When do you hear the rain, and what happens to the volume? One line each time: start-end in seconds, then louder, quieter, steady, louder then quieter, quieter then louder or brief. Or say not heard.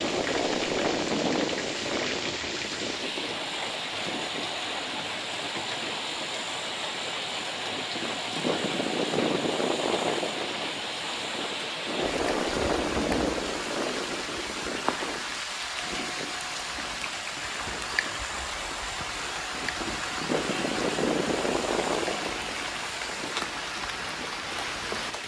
0.0-25.2 steady.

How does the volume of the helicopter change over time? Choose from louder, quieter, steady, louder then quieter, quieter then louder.
quieter then louder.